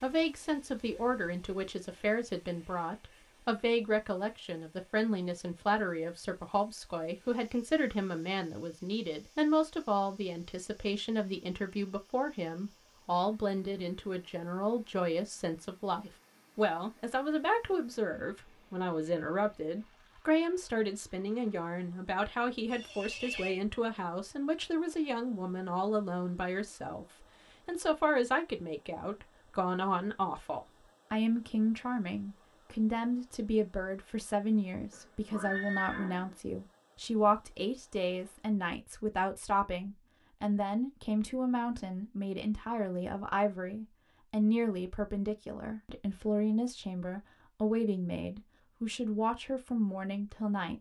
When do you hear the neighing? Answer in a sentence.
The neighing can be heard from 22.6 to 23.6 s and from 34.9 to 36.4 s.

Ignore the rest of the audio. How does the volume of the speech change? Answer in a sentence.
The volume of the speech stays about the same.